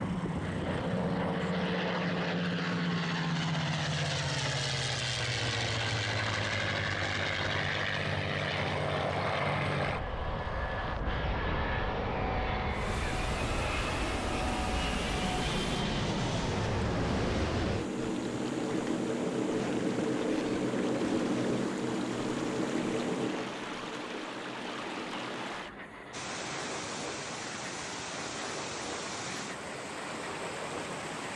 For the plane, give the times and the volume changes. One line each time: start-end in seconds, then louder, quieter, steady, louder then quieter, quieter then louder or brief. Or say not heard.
0.0-31.3 quieter.